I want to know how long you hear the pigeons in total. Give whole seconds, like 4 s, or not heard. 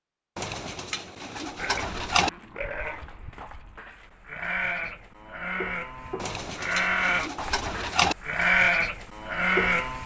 4 s.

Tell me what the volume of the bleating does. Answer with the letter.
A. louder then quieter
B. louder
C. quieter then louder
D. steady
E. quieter
B.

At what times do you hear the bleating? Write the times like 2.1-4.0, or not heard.
1.4-10.0.